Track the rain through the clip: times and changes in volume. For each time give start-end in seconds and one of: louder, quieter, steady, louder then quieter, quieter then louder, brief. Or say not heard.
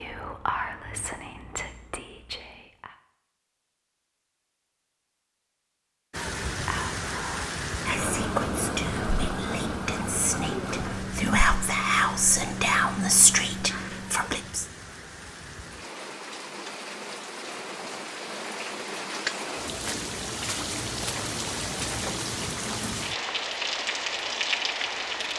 6.1-25.3 quieter then louder.